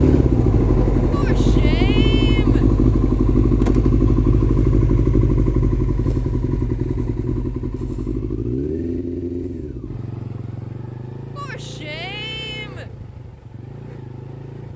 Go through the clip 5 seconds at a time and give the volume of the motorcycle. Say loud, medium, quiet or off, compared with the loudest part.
loud, medium, quiet.